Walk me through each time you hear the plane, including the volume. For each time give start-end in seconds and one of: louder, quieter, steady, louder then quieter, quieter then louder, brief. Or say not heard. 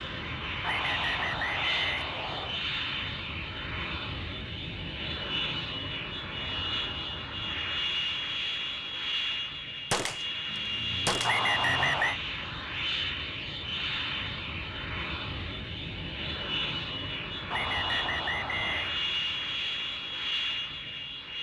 0.0-21.3 steady.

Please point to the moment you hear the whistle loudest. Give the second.
12 s.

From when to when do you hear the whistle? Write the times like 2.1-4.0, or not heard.
0.6-2.6, 11.2-12.2, 17.5-18.9.